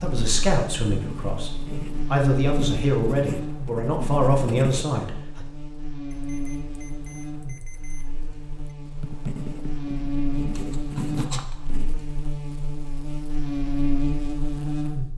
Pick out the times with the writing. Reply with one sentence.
You can hear the writing from 0.0 to 4.9 s and from 9.0 to 12.1 s.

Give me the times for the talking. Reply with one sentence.
You can hear the talking from 0.0 to 5.5 s.